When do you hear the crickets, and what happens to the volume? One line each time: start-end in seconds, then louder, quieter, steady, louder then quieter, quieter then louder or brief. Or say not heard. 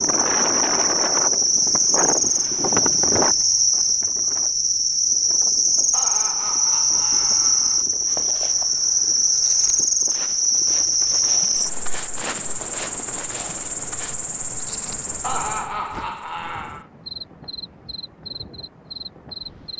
0.0-19.7 quieter.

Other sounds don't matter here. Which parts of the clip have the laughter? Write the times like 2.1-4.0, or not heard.
5.9-7.8, 15.2-16.9.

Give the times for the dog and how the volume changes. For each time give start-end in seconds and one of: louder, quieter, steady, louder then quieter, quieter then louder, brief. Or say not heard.
not heard.